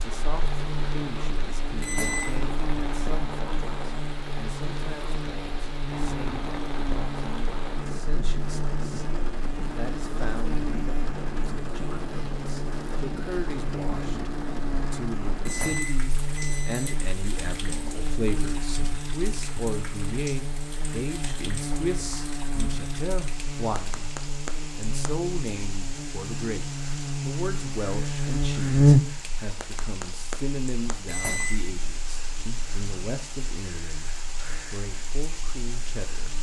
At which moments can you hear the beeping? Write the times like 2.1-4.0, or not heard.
1.8-2.4, 15.4-16.9, 31.1-31.6.